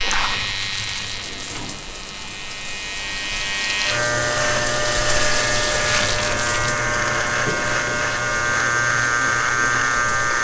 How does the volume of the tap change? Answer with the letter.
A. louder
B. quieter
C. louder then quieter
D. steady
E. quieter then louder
C.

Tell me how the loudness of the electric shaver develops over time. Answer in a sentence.
The loudness of the electric shaver goes up.